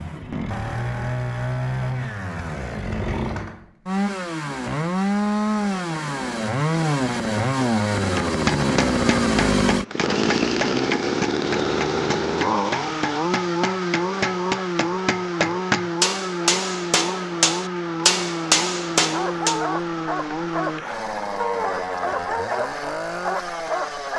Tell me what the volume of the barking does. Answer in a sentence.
The volume of the barking stays about the same.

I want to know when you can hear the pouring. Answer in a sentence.
The pouring can't be heard in this clip.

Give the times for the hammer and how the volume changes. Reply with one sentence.
The hammer can be heard from 8.2 to 19.6 s, getting louder.